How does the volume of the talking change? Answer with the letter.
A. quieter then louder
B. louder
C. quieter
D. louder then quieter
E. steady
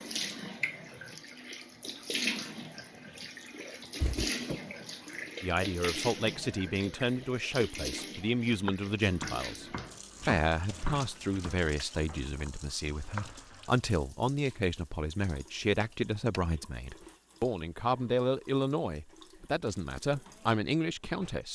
E.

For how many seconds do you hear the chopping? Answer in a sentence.
The chopping can be heard for 6 seconds in total.